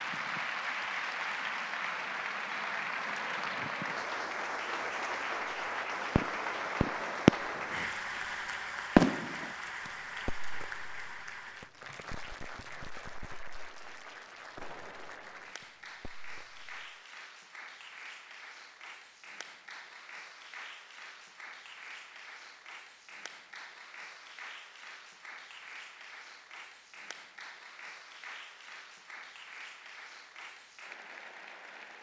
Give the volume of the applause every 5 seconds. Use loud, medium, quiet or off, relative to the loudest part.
loud, loud, medium, quiet, quiet, quiet, quiet.